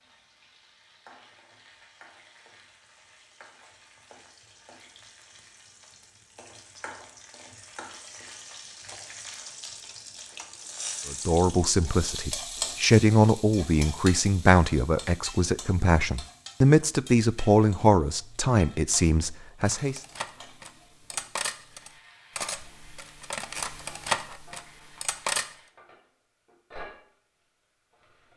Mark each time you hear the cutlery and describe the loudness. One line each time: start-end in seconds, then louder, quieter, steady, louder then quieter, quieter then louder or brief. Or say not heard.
19.6-25.4 louder.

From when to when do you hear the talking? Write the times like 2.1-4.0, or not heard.
11.1-20.0.